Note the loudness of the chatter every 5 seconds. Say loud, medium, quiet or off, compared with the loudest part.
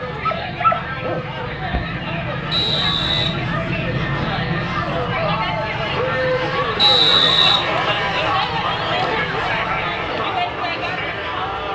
medium, loud, loud.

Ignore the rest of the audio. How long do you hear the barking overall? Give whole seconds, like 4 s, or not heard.
2 s.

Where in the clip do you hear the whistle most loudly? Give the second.
7 s.